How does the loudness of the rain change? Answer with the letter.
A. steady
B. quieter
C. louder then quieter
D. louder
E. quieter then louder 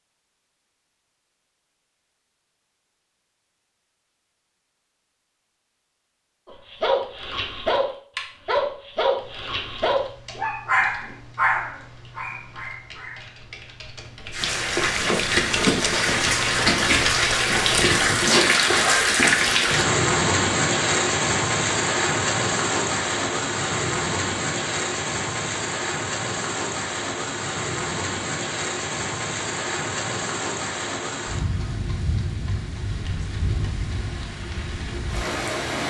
B.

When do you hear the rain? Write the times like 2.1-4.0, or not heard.
14.3-35.8.